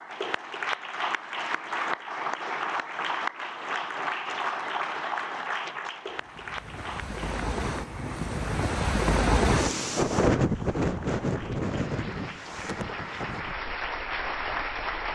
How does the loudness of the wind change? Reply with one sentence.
The volume of the wind goes up, then down.